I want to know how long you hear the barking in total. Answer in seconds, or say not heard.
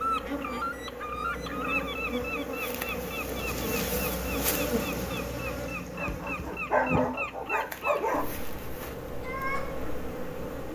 2 s.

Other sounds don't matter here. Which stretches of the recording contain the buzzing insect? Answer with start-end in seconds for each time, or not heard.
0.0-10.6.